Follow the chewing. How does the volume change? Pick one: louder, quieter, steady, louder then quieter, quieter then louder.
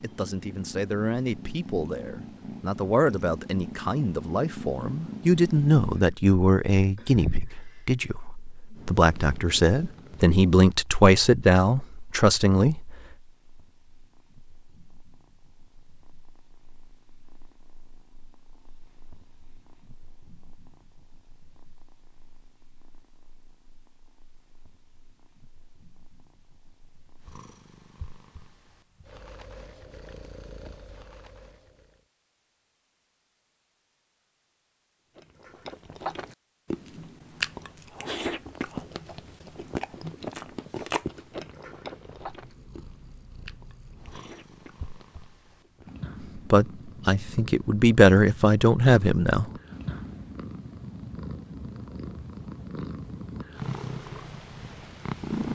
quieter.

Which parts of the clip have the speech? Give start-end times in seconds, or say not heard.
0.0-12.9, 46.4-49.5.